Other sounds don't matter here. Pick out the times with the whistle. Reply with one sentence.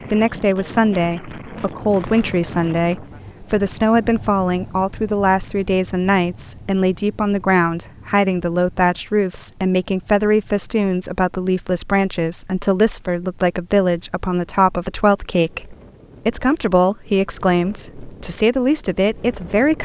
The whistle can't be heard in this clip.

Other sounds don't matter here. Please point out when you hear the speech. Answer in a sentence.
The speech can be heard from 0.1 to 19.7 s.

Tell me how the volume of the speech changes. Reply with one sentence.
The loudness of the speech stays about the same.